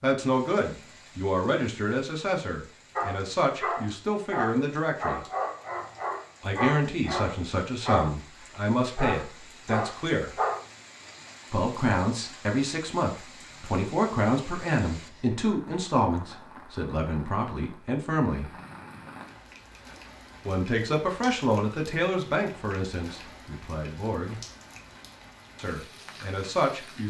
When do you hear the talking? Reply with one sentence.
You can hear the talking from 0.0 to 5.2 s, from 6.4 to 10.3 s, from 11.5 to 18.5 s, from 20.4 to 24.4 s and from 25.6 to 27.0 s.